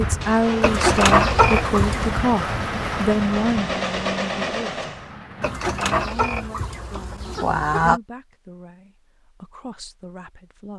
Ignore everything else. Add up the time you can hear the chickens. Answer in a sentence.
You can hear the chickens for 4 seconds altogether.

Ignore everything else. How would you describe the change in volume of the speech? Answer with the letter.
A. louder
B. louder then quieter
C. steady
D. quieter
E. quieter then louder
D.